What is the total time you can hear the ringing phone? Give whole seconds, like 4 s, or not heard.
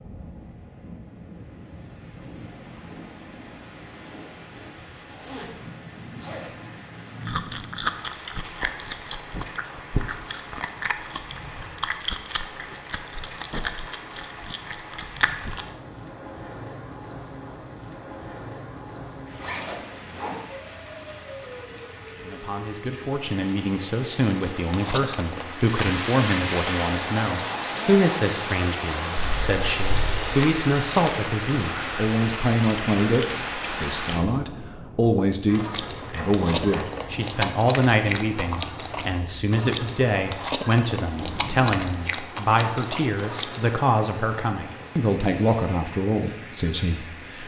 2 s.